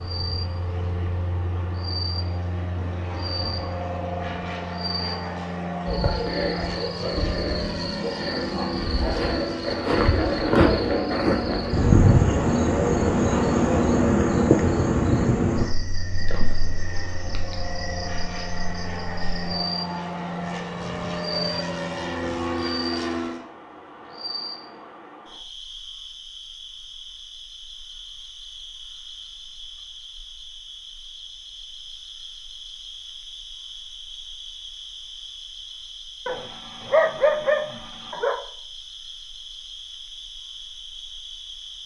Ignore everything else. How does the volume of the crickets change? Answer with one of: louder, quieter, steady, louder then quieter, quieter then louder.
louder then quieter.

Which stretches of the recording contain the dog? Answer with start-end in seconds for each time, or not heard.
36.2-38.4.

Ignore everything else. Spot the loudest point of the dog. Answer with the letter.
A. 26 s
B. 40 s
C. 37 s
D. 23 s
C.